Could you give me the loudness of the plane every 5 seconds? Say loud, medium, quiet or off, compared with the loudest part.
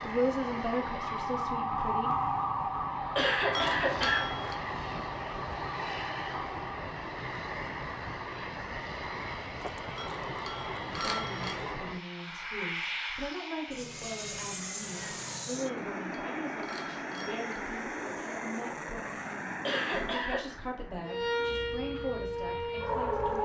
loud, loud, loud, loud, medium.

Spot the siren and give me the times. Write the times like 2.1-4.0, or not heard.
0.0-6.7, 21.1-23.4.